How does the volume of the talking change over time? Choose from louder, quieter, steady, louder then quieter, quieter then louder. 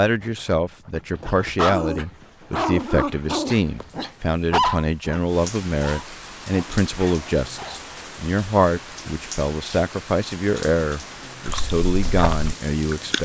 steady.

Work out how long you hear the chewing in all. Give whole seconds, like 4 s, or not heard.
2 s.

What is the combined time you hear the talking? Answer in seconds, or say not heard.
13 s.